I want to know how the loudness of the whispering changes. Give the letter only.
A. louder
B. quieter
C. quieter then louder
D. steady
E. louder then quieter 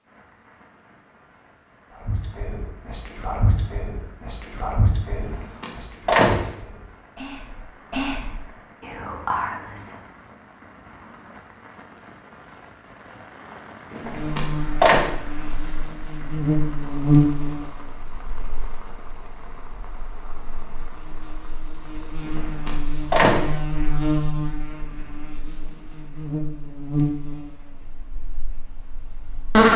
C.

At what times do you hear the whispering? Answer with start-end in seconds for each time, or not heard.
2.0-9.9.